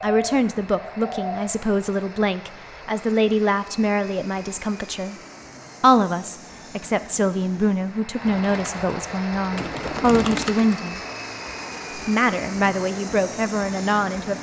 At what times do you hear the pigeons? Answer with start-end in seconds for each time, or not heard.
0.0-1.5, 8.2-10.9.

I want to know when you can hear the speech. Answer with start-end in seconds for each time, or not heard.
0.0-5.2, 5.8-11.0, 11.9-14.3.